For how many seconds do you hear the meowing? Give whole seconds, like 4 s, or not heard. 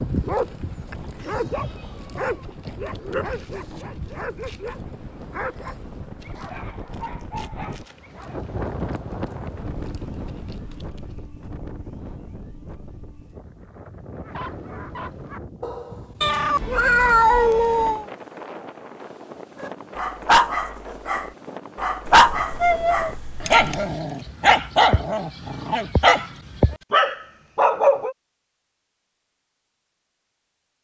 5 s.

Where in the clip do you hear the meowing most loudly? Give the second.
17 s.